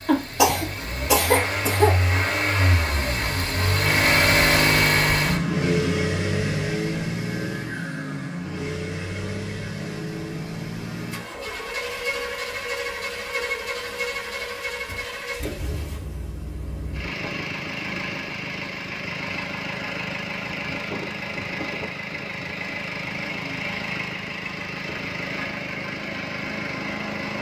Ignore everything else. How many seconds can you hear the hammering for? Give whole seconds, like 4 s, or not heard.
not heard.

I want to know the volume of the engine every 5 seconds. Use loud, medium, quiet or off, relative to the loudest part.
loud, loud, medium, medium, medium, medium.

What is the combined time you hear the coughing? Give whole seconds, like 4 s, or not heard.
2 s.